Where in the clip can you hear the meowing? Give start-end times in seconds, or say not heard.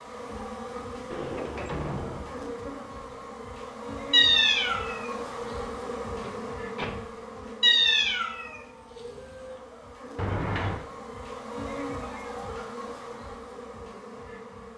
4.1-5.7, 7.6-9.6.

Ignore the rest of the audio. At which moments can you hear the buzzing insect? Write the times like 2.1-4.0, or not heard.
0.0-14.7.